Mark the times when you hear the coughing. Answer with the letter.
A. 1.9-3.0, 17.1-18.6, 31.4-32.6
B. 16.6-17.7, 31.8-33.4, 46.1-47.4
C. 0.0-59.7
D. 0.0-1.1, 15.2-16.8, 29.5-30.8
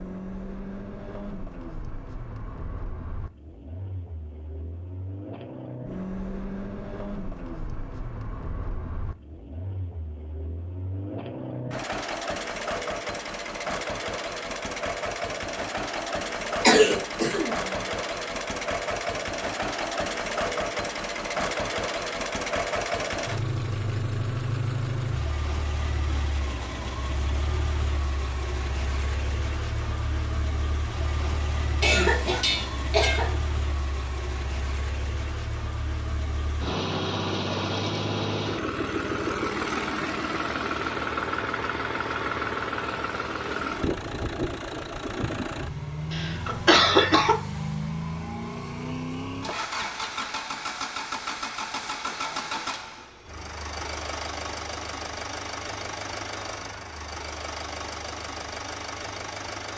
B.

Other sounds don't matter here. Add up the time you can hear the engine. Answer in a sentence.
The engine can be heard for 60 seconds in total.